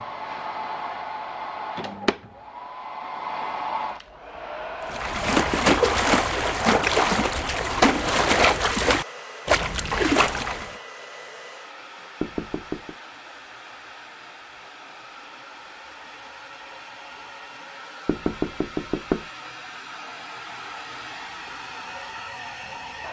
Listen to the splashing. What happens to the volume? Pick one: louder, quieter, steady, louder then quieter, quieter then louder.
steady.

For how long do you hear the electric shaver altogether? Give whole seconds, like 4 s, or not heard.
not heard.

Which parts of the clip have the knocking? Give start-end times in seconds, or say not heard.
5.3-5.8, 12.2-12.9, 18.1-19.2.